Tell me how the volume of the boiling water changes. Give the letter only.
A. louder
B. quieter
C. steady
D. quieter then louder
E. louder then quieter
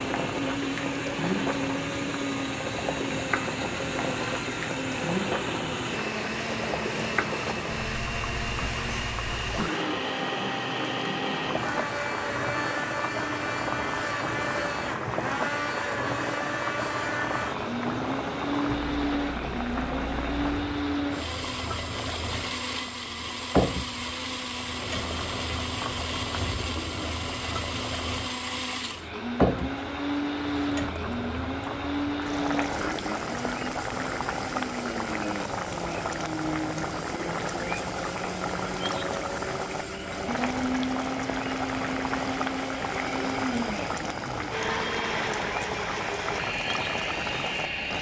C.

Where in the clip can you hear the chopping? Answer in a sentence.
The chopping can't be heard in this clip.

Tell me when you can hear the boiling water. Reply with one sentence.
The boiling water can be heard from 0.0 to 47.9 s.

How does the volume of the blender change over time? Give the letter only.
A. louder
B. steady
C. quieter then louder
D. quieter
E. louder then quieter
B.